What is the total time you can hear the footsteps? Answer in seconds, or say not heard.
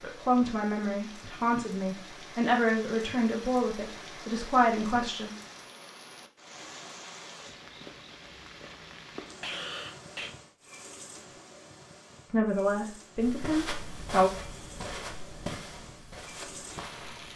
4 s.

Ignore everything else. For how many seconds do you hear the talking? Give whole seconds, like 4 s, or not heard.
7 s.